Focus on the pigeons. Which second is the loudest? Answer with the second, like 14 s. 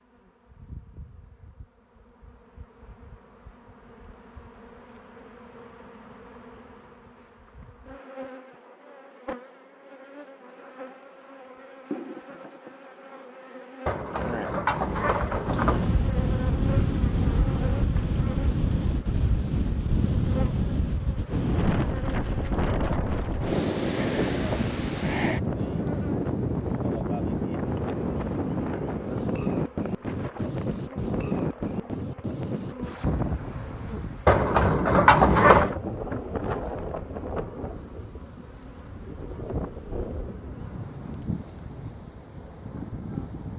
35 s.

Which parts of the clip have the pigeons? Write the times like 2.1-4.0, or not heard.
13.8-15.8, 34.2-35.8.